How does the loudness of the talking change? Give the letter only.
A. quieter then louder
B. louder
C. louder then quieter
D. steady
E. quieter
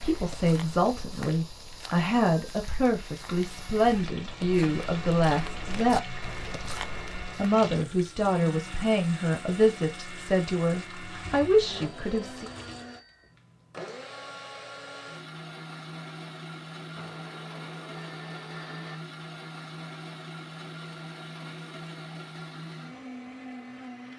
D.